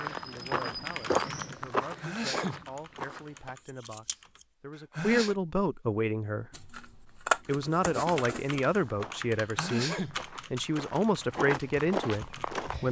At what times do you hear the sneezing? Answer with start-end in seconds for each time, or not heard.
1.8-2.6, 4.8-5.3, 9.3-10.2.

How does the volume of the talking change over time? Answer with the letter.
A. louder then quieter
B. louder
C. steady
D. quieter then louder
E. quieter
B.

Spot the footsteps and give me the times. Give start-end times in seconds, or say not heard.
0.0-3.5, 8.8-12.8.